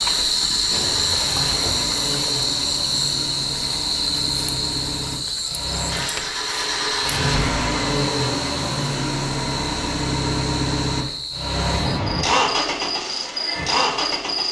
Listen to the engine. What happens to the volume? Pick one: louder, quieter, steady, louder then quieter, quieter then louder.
louder.